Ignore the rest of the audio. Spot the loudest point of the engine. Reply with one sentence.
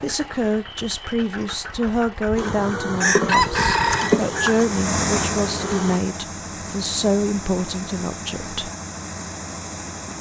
The volume of the engine peaks at 5 seconds.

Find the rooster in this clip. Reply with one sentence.
The rooster can be heard from 3.0 to 4.5 s.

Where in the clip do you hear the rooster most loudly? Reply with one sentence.
The loudest moment of the rooster is at 3 seconds.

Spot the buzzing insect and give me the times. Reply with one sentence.
You can hear the buzzing insect from 2.4 to 6.0 s.